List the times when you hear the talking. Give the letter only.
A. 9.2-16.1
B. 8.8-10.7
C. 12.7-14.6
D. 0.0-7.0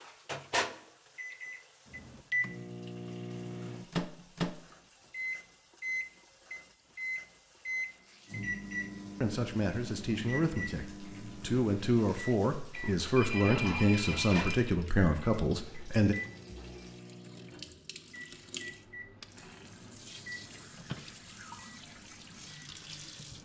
A.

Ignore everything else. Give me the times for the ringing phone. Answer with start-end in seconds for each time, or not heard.
12.7-14.6.